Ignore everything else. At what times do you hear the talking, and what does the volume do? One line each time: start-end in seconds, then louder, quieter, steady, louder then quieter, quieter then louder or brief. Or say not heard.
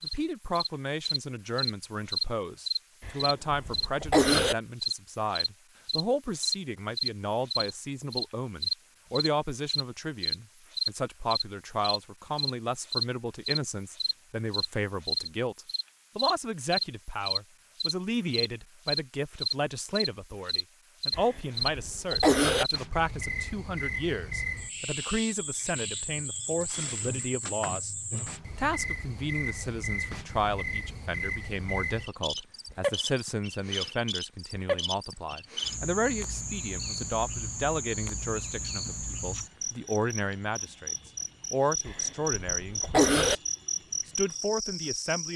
0.0-27.9 steady
28.6-43.2 steady
44.0-45.3 brief.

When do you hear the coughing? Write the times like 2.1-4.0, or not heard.
3.0-4.5, 21.1-22.6, 41.9-43.4.